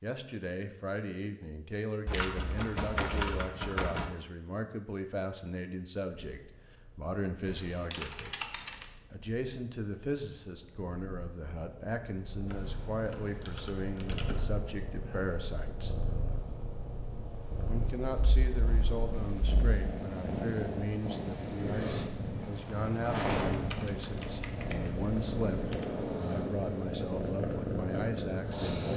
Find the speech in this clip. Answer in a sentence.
The speech can be heard from 0.0 to 8.3 s, from 9.1 to 15.9 s and from 17.6 to 28.9 s.